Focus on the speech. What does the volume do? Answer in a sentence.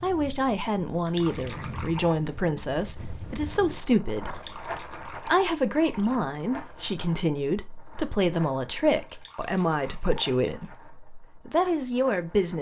The loudness of the speech stays about the same.